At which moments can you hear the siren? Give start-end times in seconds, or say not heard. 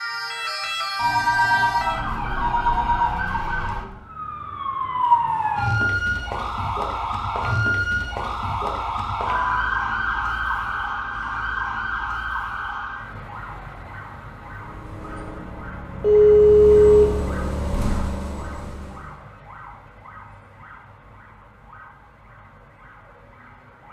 0.0-23.8.